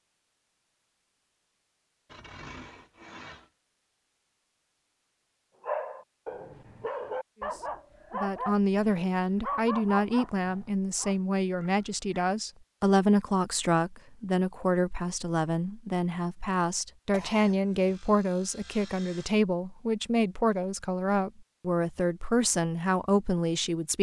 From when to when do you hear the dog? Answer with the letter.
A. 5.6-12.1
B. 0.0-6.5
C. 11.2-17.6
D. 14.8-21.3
A.